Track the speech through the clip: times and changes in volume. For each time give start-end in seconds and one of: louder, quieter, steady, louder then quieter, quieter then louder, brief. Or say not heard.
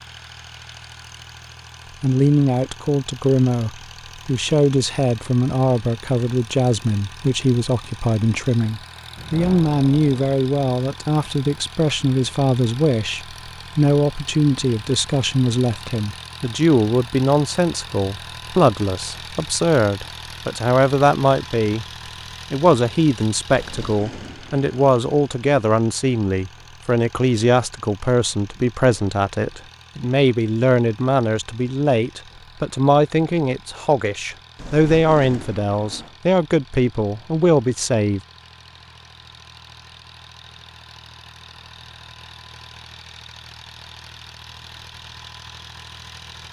2.0-21.9 steady
22.5-38.2 steady.